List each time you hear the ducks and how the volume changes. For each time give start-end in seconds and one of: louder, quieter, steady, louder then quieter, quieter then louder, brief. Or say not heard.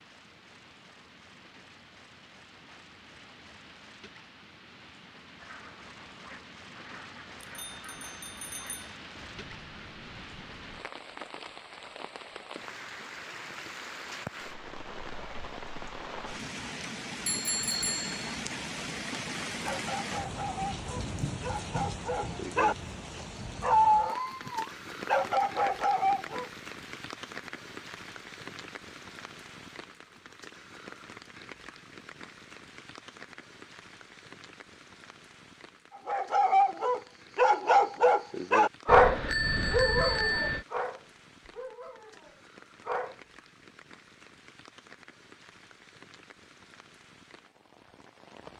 5.3-10.8 steady.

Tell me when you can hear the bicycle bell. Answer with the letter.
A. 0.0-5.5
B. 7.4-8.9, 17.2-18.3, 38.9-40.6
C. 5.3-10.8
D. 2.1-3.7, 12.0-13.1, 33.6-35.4
B.